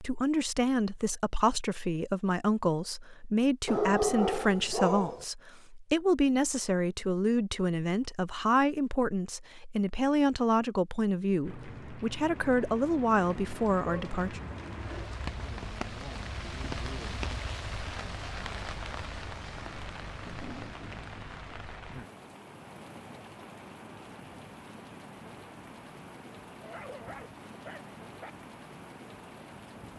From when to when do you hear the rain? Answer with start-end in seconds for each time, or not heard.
11.4-29.9.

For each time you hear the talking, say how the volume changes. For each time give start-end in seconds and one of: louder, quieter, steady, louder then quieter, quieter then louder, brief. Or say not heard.
0.0-14.4 steady.